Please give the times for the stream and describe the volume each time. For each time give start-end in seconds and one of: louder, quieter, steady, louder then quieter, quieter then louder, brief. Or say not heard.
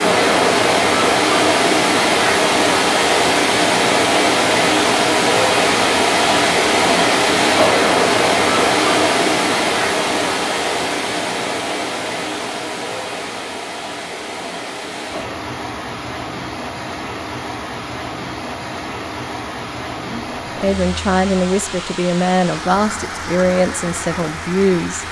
0.0-25.0 quieter.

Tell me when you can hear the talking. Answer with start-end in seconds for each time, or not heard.
20.1-25.0.